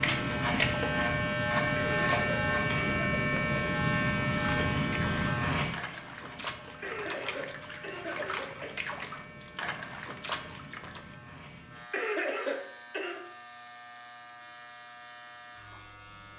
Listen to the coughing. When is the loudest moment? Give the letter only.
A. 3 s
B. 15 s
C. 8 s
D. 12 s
D.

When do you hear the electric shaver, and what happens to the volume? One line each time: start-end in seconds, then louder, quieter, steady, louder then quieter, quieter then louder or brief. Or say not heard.
0.0-16.3 quieter.